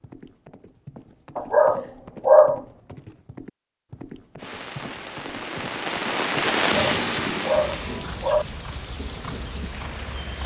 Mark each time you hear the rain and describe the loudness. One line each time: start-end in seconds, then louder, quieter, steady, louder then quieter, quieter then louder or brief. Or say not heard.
4.3-10.4 louder then quieter.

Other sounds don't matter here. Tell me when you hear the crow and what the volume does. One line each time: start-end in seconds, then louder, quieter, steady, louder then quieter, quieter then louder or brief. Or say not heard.
not heard.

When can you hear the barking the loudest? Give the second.
2 s.